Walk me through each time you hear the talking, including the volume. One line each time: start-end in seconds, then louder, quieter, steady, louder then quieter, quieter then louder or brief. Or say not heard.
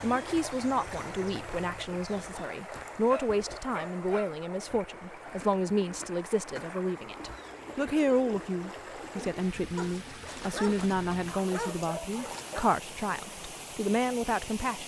0.0-14.8 steady.